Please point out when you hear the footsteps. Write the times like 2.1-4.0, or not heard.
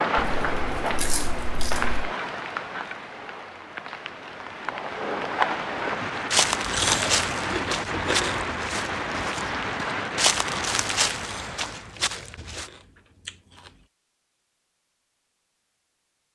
6.3-12.7.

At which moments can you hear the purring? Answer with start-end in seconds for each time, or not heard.
not heard.